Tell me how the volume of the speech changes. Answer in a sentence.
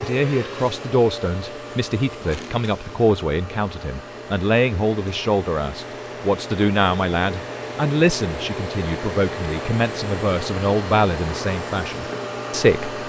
The volume of the speech stays about the same.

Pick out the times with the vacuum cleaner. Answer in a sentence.
You can hear the vacuum cleaner from 0.0 to 13.0 s.